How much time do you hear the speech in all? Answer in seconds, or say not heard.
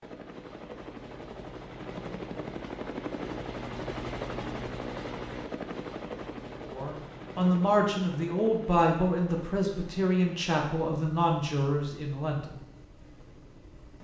6 s.